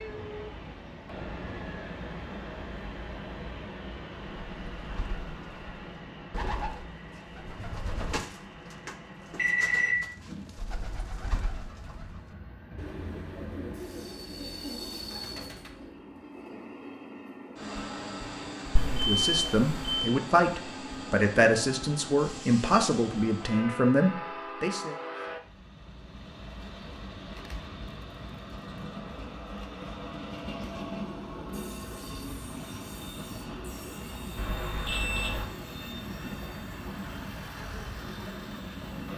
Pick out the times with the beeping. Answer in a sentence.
You can hear the beeping from 9.3 to 9.9 s, from 18.8 to 20.1 s and from 34.4 to 35.5 s.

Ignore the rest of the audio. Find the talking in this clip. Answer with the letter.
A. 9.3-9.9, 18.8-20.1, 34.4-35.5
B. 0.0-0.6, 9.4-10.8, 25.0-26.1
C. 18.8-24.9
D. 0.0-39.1
C.